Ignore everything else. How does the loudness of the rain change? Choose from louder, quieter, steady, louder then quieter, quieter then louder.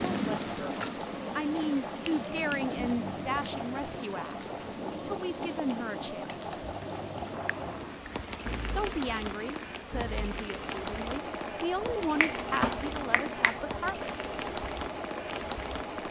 steady.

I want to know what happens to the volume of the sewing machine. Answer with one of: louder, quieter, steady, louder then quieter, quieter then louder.
steady.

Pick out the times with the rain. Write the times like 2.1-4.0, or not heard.
0.0-16.0.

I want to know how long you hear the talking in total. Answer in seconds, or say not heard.
12 s.